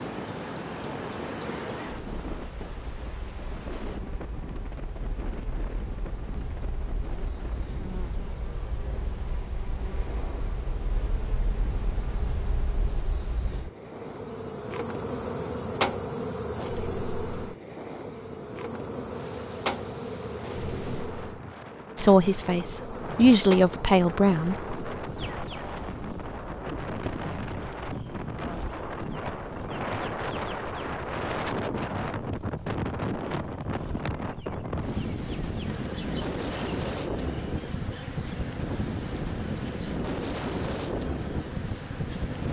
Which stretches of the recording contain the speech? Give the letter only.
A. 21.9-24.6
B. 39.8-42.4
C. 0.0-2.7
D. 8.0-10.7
A.